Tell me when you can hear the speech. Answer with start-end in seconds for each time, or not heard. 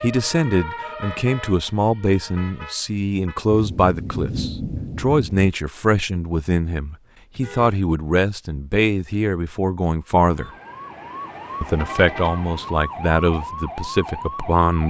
0.0-10.5, 11.6-14.8.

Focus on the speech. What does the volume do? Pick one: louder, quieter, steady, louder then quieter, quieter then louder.
steady.